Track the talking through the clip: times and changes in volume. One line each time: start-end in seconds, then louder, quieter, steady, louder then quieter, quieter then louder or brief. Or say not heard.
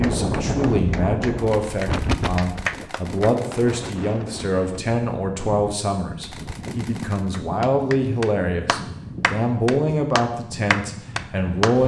0.0-11.8 steady.